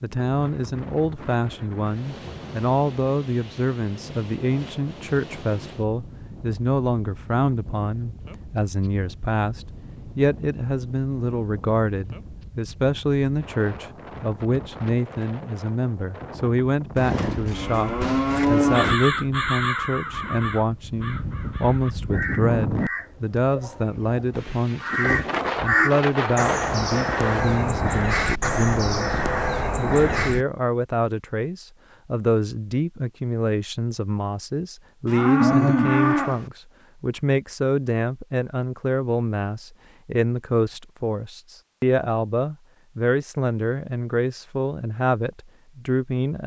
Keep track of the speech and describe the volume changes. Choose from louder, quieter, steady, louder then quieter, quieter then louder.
steady.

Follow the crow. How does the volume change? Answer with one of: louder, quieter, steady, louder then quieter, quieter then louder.
quieter then louder.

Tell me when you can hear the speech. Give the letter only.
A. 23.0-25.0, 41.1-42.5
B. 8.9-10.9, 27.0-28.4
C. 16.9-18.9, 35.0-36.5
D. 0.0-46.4
D.